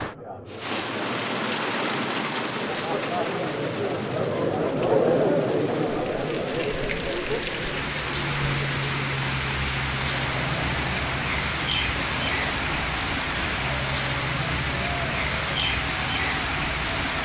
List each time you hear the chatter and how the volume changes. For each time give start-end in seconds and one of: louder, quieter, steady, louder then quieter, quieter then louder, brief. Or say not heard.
0.0-17.2 louder then quieter.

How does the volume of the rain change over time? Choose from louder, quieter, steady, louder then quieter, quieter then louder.
quieter then louder.